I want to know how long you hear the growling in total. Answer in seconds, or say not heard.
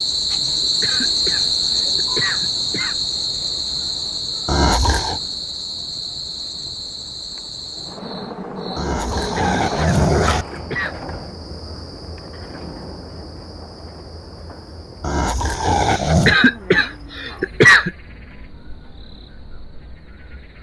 4 s.